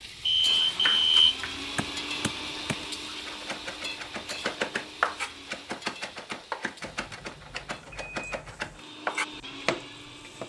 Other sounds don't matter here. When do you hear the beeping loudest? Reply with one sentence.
The volume of the beeping peaks at 1 second.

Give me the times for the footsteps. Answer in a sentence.
You can't hear the footsteps here.